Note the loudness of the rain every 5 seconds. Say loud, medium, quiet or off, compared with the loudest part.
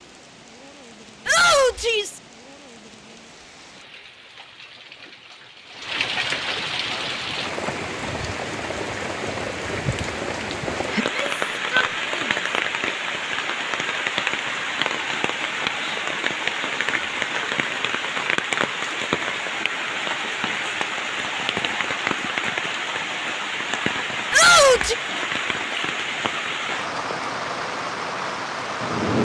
quiet, loud, loud, loud, loud, loud.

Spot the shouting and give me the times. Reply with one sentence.
The shouting can be heard from 1.2 to 2.2 s, from 11.0 to 12.4 s and from 24.3 to 24.9 s.